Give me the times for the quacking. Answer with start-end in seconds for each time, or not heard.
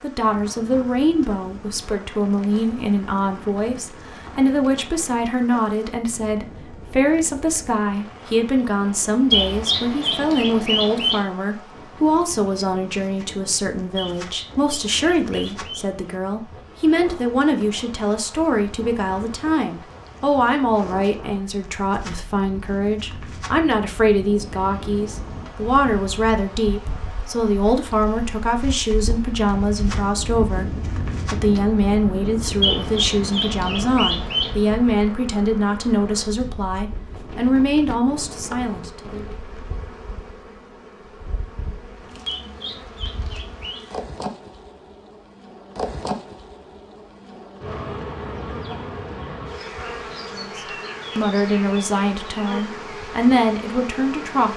9.3-11.2, 13.9-15.9, 32.6-34.5, 42.2-43.8.